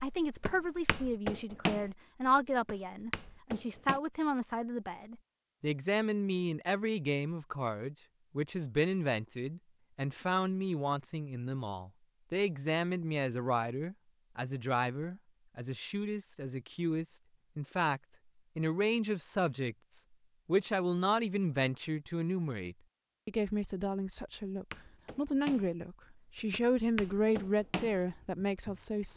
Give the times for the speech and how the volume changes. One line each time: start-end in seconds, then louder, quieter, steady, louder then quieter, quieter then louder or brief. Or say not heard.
0.0-29.1 steady.